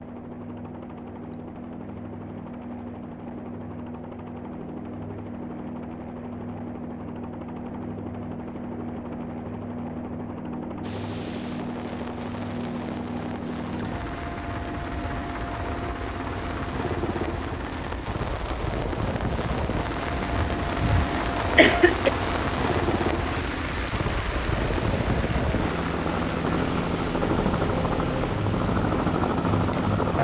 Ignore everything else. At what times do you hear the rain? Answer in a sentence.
You can hear the rain from 10.8 to 30.1 s.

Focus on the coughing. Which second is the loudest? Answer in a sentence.
The loudest moment of the coughing is at 22 seconds.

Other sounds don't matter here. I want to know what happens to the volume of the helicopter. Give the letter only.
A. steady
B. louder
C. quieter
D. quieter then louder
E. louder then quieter
B.